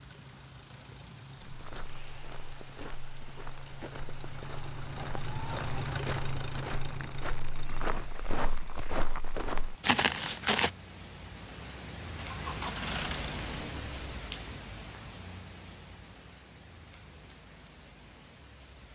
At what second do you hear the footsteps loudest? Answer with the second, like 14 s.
10 s.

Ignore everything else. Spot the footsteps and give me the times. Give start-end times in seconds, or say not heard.
1.4-10.7.